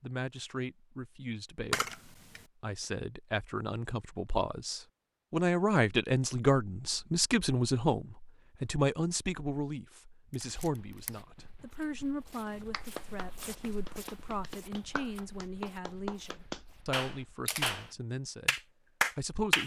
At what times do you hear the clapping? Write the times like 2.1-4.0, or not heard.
12.4-17.9, 18.4-19.6.